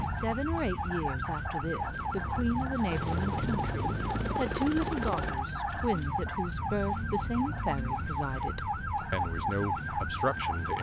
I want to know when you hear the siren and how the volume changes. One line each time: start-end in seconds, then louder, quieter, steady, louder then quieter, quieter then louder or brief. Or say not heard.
0.0-10.7 steady.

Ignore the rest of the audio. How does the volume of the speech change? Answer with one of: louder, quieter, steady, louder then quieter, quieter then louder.
steady.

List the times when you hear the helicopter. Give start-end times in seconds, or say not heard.
1.9-5.4.